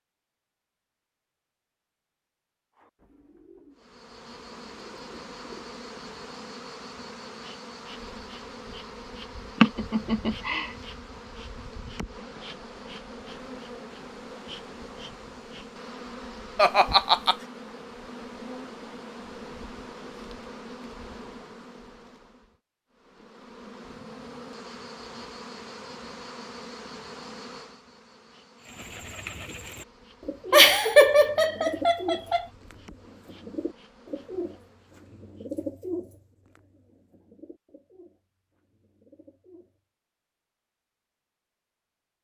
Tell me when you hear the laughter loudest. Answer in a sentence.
The volume of the laughter peaks at 31 seconds.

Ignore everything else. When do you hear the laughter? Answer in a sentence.
You can hear the laughter from 9.6 to 10.7 s, from 16.6 to 17.4 s and from 30.5 to 32.5 s.